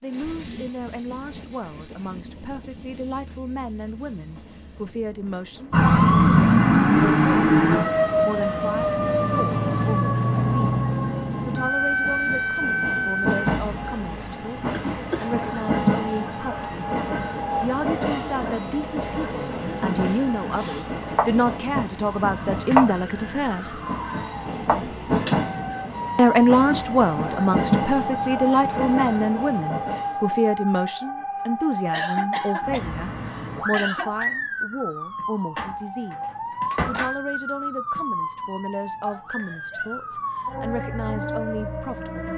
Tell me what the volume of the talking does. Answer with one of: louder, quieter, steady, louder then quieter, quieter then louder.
louder then quieter.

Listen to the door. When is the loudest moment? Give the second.
37 s.